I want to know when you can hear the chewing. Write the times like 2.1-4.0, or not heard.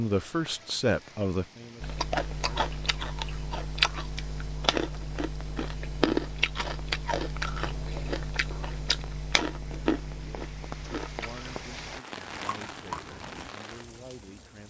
1.8-13.5.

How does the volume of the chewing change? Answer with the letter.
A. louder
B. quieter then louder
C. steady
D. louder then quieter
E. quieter
E.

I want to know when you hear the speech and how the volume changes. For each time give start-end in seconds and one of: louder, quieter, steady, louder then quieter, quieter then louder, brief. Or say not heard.
0.0-2.7 brief
10.2-14.6 steady.